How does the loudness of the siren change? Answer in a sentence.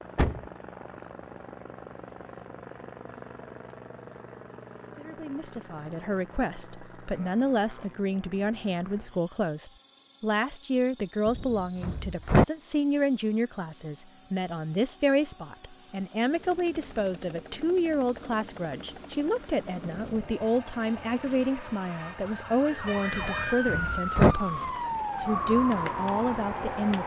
The loudness of the siren goes up.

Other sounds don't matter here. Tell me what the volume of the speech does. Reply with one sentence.
The volume of the speech stays about the same.